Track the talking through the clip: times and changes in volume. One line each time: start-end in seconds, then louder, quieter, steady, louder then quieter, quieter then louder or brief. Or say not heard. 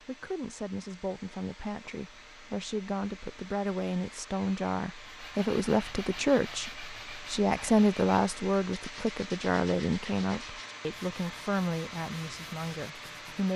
0.1-13.5 louder then quieter.